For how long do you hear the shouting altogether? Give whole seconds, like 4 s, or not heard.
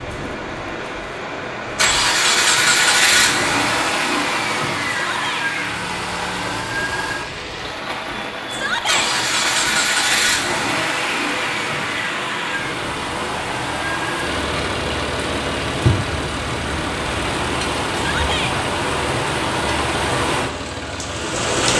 2 s.